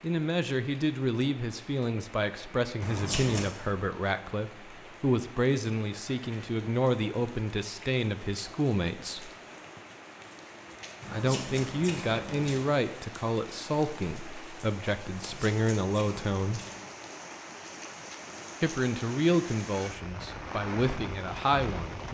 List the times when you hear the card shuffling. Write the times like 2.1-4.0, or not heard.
2.8-3.5, 11.0-12.7, 15.1-16.9.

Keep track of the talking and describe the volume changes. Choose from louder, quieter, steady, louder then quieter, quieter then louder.
steady.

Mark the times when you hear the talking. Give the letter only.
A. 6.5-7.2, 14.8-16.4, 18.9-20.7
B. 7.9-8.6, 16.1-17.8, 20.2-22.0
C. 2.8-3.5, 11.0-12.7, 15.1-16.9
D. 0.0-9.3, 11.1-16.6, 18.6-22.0
D.